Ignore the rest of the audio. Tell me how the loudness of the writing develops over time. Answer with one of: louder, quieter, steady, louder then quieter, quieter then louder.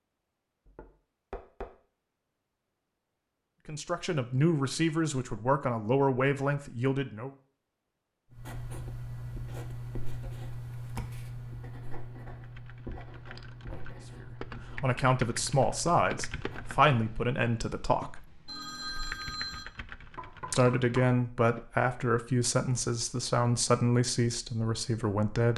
quieter.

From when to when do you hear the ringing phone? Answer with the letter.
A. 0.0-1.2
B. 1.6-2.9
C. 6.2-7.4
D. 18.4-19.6
D.